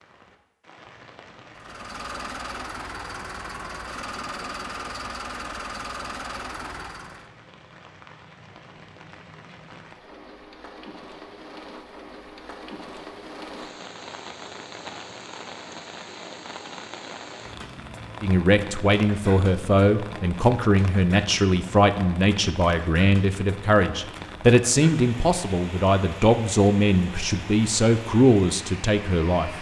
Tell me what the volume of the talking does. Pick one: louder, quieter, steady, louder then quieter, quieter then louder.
steady.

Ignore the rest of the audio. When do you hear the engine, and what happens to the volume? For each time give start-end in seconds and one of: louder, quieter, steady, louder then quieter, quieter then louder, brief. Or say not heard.
1.6-7.3 steady.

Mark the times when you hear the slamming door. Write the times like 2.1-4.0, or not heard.
not heard.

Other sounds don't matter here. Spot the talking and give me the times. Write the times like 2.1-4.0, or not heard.
18.2-29.5.